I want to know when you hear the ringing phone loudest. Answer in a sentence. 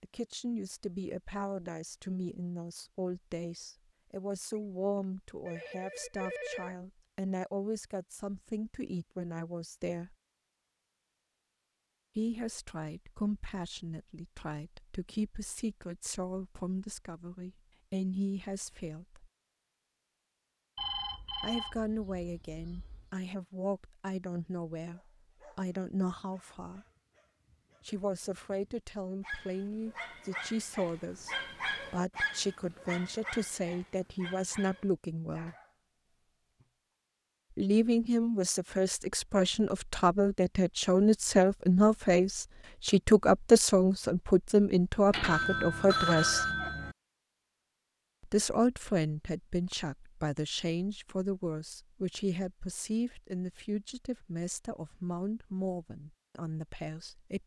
The loudest moment of the ringing phone is at 46 seconds.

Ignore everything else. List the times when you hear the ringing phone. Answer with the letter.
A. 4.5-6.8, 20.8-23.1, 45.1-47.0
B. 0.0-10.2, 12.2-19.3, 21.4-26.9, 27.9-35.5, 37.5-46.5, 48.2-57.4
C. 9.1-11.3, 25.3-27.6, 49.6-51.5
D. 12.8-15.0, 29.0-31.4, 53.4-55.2
A.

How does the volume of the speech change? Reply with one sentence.
The loudness of the speech goes up, then down.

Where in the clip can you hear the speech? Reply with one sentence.
The speech can be heard from 0.0 to 10.2 s, from 12.2 to 19.3 s, from 21.4 to 26.9 s, from 27.9 to 35.5 s, from 37.5 to 46.5 s and from 48.2 to 57.4 s.